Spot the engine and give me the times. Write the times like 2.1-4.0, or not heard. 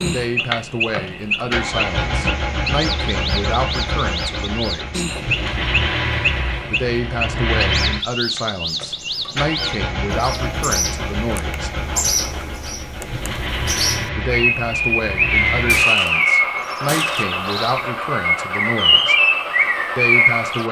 0.2-20.6.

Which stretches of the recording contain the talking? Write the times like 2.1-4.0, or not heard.
0.0-5.0, 6.7-11.7, 14.2-19.1, 19.9-20.6.